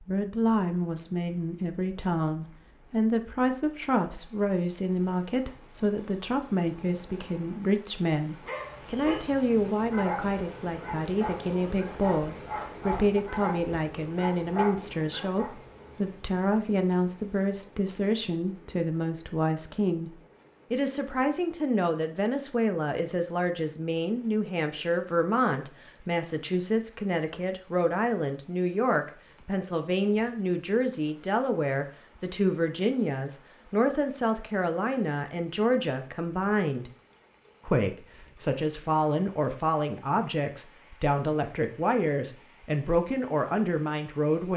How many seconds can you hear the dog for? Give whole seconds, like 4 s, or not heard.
7 s.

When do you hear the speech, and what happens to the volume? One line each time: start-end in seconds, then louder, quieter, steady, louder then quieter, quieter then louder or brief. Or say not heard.
0.0-36.9 steady
37.6-44.5 steady.